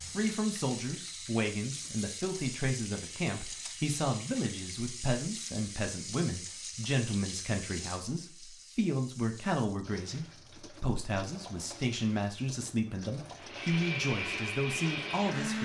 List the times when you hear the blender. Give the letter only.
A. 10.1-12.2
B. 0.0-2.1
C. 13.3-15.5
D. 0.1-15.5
C.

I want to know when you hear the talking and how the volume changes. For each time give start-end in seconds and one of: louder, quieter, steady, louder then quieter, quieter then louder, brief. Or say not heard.
0.1-15.5 steady.